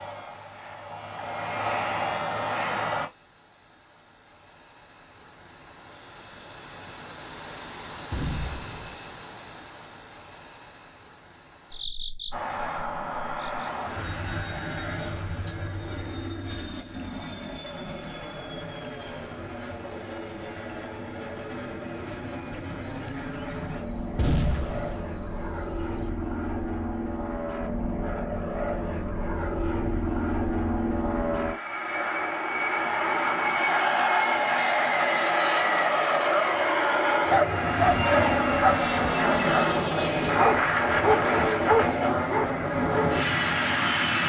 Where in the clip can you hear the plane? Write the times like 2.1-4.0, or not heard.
0.0-3.1, 12.3-44.2.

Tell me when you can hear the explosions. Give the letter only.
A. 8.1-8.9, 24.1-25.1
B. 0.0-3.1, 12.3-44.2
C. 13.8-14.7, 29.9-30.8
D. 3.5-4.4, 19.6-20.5
A.